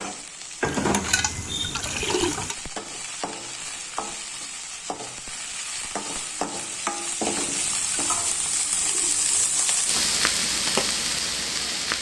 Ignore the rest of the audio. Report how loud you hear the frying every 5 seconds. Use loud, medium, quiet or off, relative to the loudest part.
medium, loud, loud.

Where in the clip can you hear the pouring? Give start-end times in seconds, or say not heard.
0.6-2.5, 7.5-9.4.